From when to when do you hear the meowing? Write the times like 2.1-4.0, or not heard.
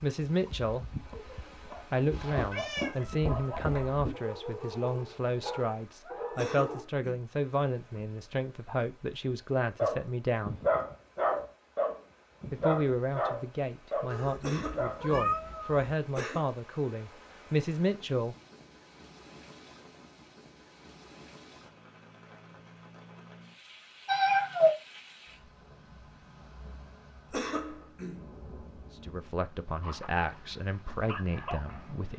2.1-4.1, 14.1-15.9, 24.1-24.8.